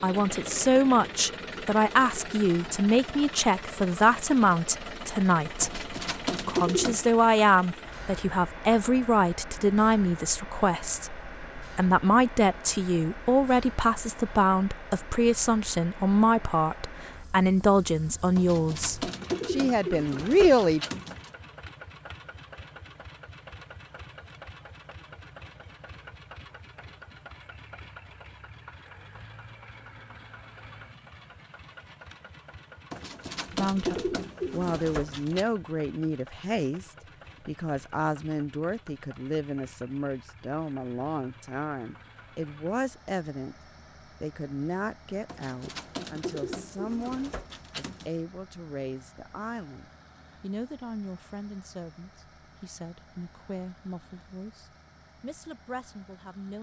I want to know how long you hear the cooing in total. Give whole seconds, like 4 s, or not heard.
10 s.